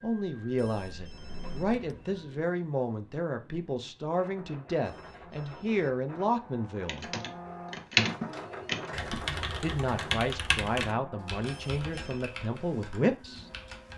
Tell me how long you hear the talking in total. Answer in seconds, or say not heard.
11 s.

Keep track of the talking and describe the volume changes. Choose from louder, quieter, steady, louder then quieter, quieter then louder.
steady.